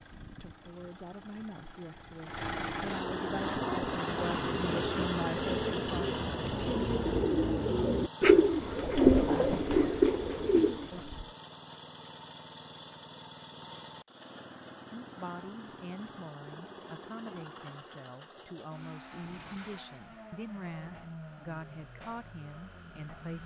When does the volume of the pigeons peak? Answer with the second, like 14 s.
9 s.